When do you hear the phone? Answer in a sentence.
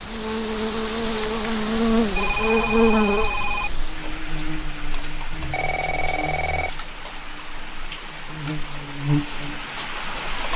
The phone can be heard from 2.1 to 3.7 s and from 5.3 to 6.7 s.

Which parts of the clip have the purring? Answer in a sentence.
The purring can't be heard in this clip.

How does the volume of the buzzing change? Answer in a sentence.
The loudness of the buzzing goes down, then up.